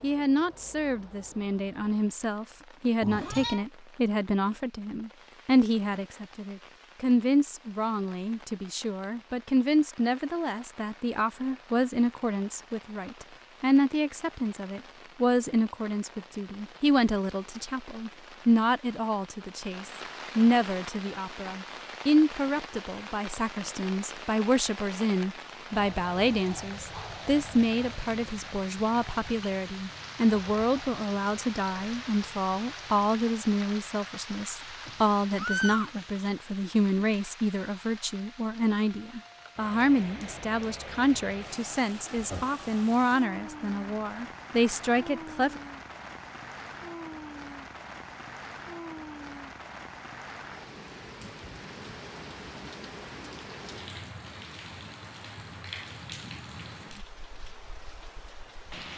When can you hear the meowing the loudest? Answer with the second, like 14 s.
36 s.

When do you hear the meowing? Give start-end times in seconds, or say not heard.
3.0-3.6, 34.9-36.3, 42.1-42.6.